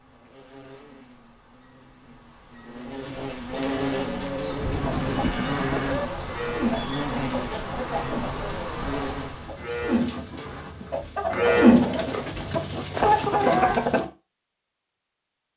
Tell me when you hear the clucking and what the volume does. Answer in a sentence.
You can hear the clucking from 2.9 to 14.1 s, getting louder.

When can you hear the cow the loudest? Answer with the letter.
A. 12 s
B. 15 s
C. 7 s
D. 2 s
A.